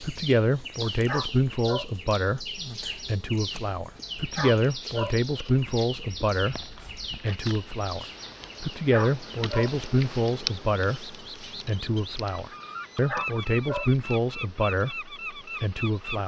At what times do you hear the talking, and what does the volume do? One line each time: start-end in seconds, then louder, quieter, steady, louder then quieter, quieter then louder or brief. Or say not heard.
0.0-16.2 steady.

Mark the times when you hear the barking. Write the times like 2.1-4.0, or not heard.
1.1-1.9, 4.3-5.2, 8.9-9.7, 13.1-13.9.